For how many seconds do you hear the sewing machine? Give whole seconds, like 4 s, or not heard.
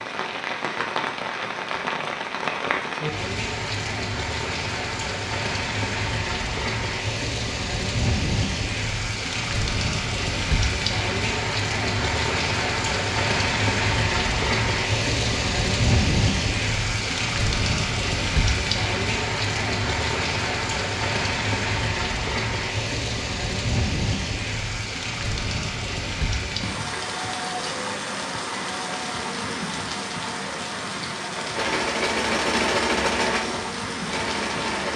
3 s.